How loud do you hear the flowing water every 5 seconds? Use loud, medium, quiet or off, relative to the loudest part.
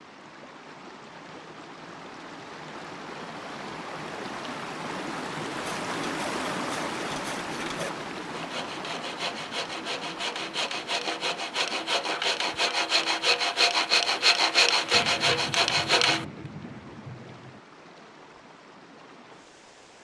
medium, loud, medium, quiet.